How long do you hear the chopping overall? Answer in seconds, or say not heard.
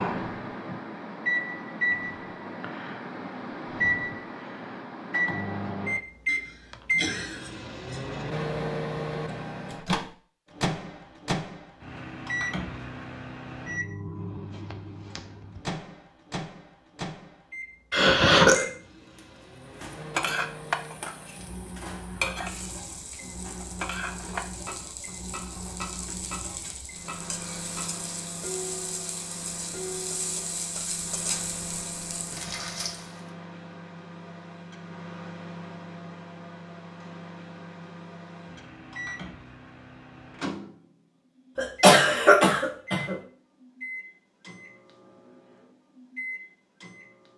not heard.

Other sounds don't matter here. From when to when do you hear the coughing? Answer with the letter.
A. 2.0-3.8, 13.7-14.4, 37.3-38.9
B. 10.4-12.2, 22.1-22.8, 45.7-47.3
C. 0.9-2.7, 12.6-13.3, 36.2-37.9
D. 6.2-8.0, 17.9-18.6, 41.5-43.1
D.